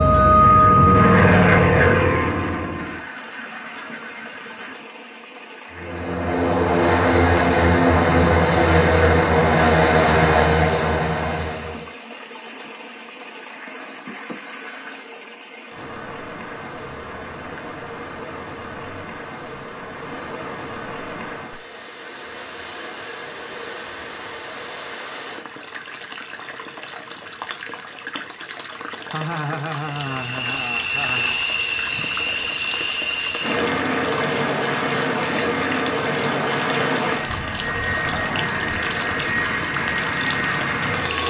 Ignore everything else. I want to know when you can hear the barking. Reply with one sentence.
You can't hear the barking here.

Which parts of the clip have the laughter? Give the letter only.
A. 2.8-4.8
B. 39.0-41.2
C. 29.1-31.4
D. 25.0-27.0
C.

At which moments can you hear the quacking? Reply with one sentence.
You can hear the quacking from 2.8 to 4.8 s.